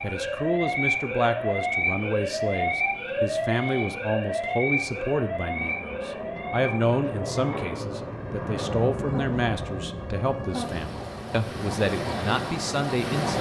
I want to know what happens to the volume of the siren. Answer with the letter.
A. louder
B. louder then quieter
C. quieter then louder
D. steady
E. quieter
C.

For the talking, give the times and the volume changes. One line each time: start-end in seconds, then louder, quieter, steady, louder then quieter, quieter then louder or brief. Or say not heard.
0.0-13.3 steady.